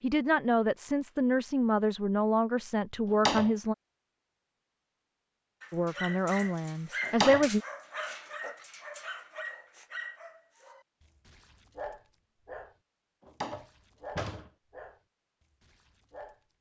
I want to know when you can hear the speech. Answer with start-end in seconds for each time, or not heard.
0.0-3.8, 5.7-7.6.